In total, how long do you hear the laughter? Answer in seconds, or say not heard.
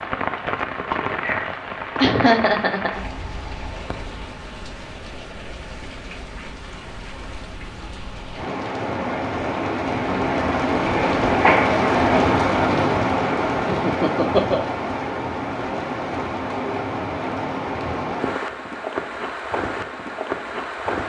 2 s.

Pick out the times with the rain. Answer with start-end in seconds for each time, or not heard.
0.0-21.0.